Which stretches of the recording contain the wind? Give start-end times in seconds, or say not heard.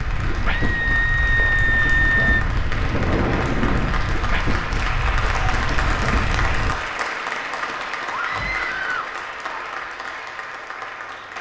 0.0-6.8.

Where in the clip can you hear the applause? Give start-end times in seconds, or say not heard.
0.0-11.3.